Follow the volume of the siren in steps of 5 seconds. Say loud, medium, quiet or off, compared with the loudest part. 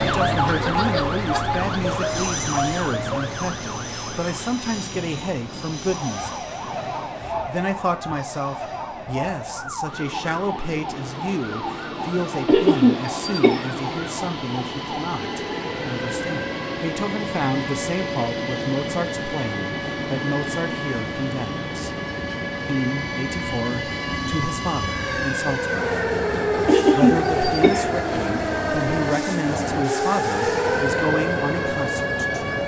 loud, medium, medium, medium, medium, loud, loud.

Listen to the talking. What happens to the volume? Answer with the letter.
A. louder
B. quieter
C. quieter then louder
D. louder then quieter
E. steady
E.